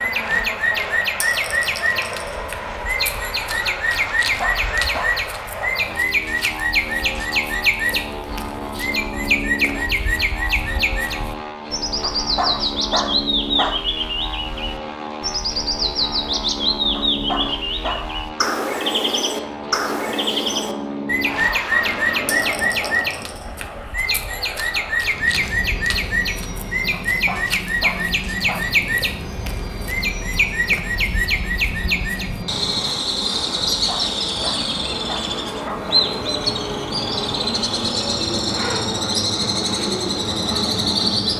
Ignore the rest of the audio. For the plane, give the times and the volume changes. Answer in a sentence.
The plane can be heard from 0.0 to 41.3 s, at a steady volume.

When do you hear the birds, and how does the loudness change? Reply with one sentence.
The birds can be heard from 0.0 to 41.3 s, at a steady volume.